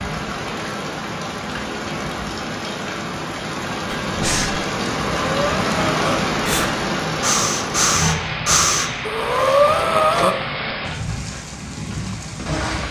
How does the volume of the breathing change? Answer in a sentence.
The volume of the breathing goes up.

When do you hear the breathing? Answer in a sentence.
The breathing can be heard from 3.9 to 10.3 s.